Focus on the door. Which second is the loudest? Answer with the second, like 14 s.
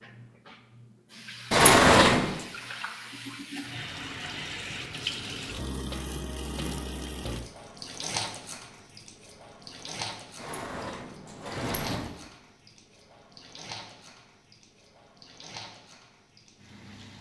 2 s.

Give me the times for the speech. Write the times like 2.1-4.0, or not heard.
not heard.